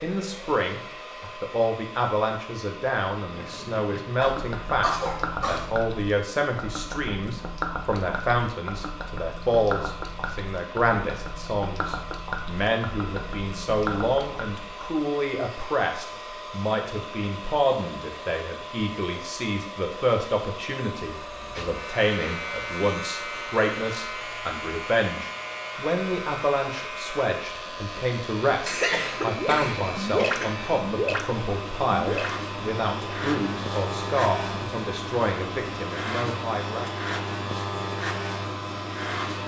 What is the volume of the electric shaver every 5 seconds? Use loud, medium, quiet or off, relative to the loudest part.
off, off, off, off, loud, medium, loud, loud.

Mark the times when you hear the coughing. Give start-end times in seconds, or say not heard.
4.2-5.7, 28.6-30.6.